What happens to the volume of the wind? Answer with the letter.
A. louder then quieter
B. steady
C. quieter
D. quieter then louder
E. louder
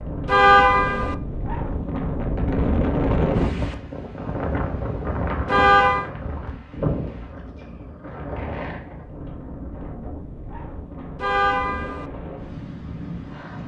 C.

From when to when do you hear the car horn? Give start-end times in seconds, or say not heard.
0.2-1.1, 5.5-6.1, 11.2-12.1.